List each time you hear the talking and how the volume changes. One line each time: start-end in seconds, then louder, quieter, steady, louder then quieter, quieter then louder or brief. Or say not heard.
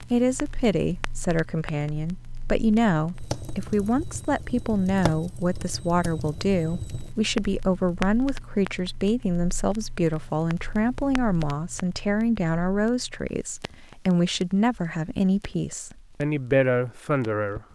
0.1-17.6 steady.